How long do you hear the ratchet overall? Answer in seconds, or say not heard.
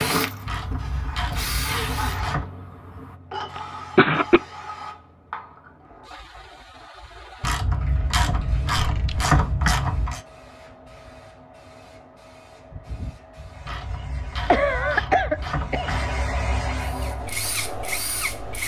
7 s.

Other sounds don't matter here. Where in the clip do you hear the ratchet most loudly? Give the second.
9 s.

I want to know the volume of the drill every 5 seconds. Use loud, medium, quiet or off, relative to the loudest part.
loud, off, off, loud.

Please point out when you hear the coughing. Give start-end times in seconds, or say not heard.
3.5-4.4, 8.8-9.3, 14.4-15.9.